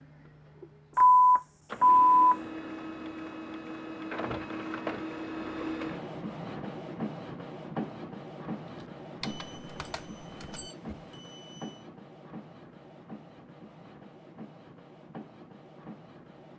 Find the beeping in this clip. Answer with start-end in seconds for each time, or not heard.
0.9-2.4, 9.2-11.8.